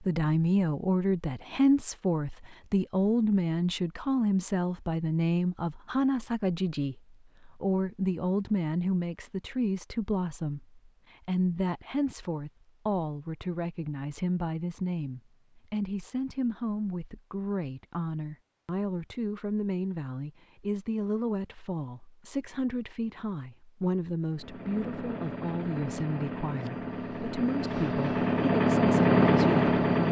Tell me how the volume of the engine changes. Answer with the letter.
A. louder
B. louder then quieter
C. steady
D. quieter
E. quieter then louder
A.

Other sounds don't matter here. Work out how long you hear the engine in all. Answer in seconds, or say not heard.
6 s.